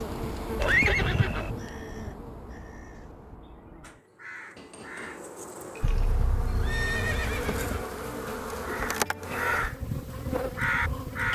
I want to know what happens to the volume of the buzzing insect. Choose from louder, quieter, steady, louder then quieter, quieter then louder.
quieter then louder.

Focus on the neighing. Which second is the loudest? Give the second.
1 s.